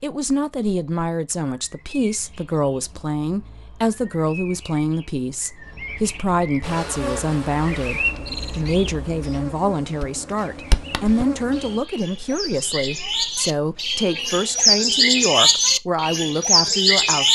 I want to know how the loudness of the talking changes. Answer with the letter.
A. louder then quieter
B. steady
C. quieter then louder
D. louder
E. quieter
B.